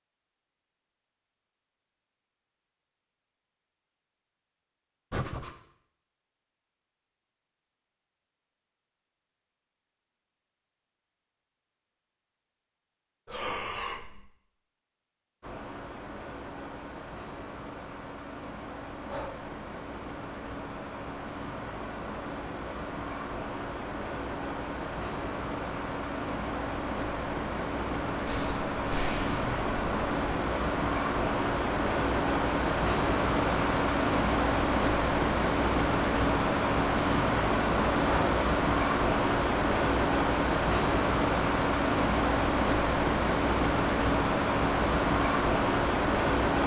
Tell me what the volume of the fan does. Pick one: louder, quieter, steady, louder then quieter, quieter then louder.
louder.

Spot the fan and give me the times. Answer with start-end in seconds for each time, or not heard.
15.4-46.6.